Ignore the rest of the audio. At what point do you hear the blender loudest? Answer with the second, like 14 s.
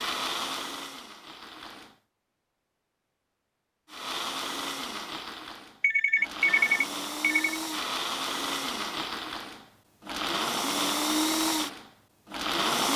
11 s.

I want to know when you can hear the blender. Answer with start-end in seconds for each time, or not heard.
0.0-1.9, 3.9-12.9.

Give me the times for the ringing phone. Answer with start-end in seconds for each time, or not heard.
5.8-7.6.